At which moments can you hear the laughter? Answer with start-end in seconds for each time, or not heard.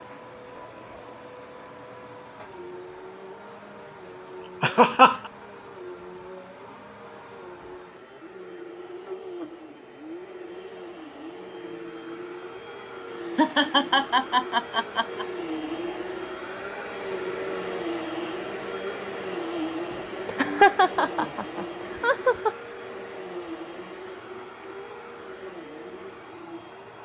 4.4-5.2, 13.3-15.2, 19.9-22.6.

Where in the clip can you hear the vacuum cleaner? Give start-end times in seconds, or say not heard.
0.0-27.0.